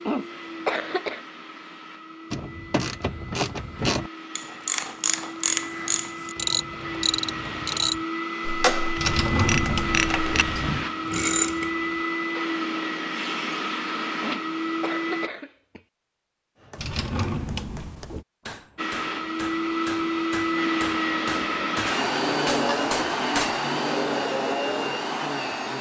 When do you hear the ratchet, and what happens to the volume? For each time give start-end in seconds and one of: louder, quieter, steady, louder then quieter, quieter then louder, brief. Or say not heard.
2.3-11.7 steady.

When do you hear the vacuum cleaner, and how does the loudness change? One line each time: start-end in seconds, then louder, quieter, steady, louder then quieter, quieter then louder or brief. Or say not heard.
0.0-15.3 louder
18.8-25.7 steady.